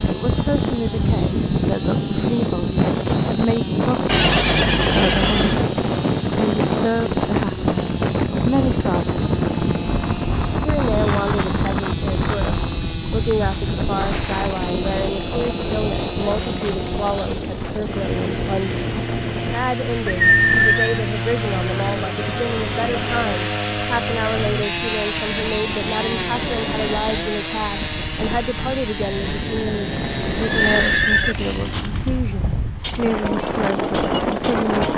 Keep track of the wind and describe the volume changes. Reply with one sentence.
The loudness of the wind goes down, then up.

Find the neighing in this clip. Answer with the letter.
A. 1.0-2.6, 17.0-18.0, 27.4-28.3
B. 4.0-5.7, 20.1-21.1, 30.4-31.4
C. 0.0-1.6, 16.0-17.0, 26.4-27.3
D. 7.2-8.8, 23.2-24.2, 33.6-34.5
B.